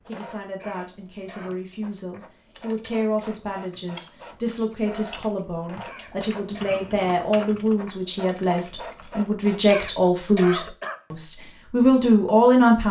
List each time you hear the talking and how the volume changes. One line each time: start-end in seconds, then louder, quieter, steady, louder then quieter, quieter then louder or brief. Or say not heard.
0.0-12.8 louder.